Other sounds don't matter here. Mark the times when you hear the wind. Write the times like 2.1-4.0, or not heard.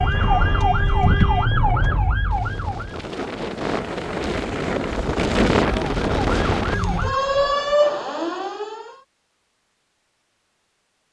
0.0-7.7.